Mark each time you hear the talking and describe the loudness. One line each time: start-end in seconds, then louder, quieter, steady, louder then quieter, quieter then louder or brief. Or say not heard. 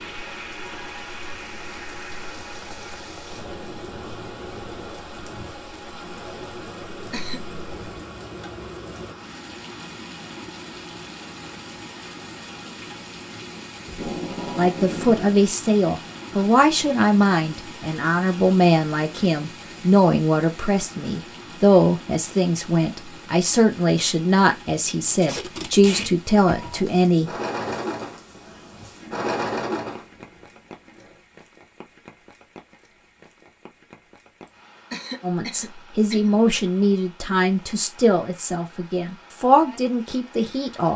14.6-27.3 steady
35.2-40.9 quieter then louder.